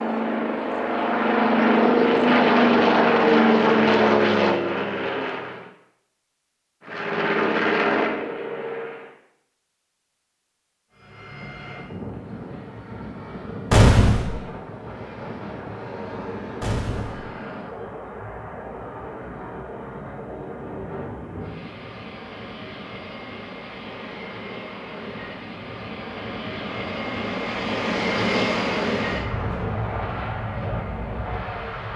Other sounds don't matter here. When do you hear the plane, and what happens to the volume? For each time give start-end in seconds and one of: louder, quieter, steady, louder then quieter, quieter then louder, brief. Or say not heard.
0.0-5.7 louder then quieter
6.8-9.2 brief
10.9-31.9 louder.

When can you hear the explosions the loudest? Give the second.
14 s.